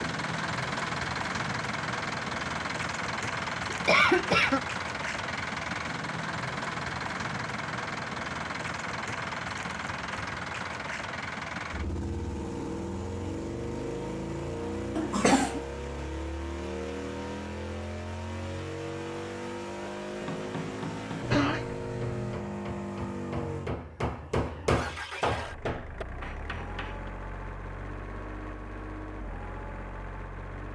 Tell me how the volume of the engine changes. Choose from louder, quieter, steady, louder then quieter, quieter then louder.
quieter.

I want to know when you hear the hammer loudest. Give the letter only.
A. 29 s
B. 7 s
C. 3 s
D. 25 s
D.